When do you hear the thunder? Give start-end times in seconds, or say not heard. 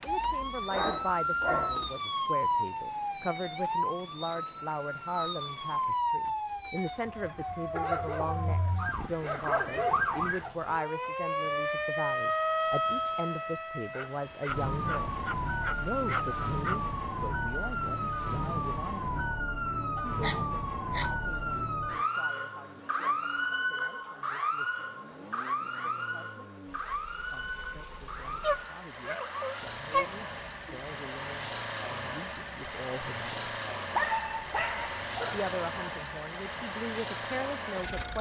not heard.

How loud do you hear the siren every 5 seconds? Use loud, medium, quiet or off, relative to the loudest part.
loud, loud, loud, loud, loud, medium, quiet, quiet.